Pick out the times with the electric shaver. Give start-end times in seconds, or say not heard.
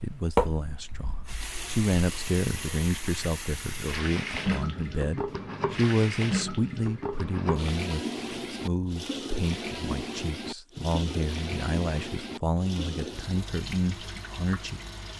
not heard.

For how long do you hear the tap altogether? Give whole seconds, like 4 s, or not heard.
15 s.